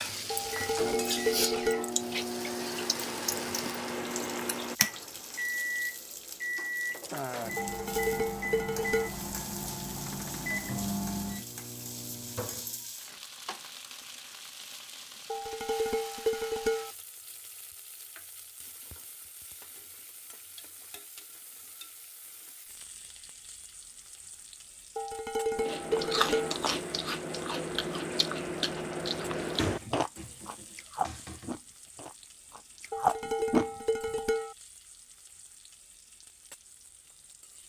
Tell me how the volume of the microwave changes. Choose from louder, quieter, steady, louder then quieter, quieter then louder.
steady.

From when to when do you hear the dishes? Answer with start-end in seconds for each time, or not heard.
0.3-1.9, 7.5-9.1, 15.3-16.9, 24.9-26.6, 32.9-34.5.